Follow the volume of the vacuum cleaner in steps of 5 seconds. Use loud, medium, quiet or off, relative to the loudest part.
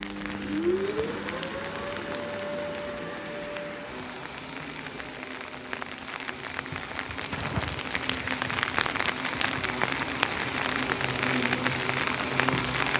loud, medium, loud.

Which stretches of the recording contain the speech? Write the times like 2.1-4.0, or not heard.
not heard.